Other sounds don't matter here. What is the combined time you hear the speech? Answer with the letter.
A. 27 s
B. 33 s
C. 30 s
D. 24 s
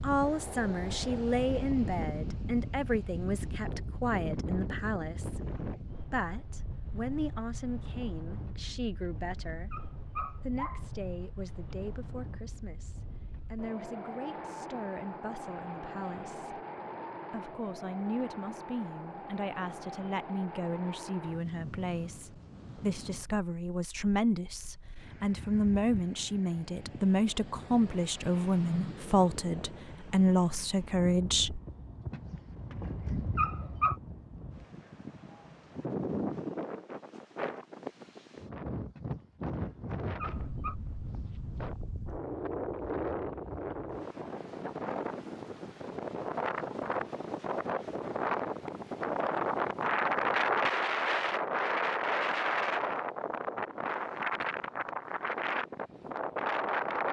C.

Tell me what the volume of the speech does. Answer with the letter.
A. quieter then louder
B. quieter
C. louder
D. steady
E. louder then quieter
A.